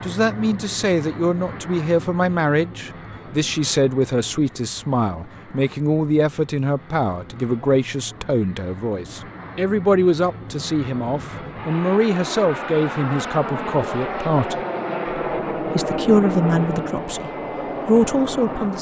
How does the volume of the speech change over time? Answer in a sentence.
The volume of the speech stays about the same.